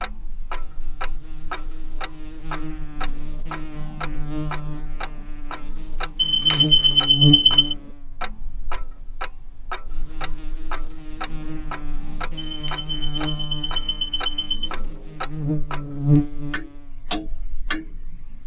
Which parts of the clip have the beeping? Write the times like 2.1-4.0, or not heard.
6.2-7.8, 12.4-14.7.